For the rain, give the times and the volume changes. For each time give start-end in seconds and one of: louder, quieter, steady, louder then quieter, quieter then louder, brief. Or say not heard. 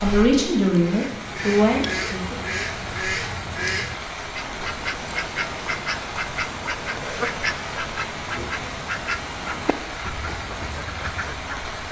0.0-11.8 steady.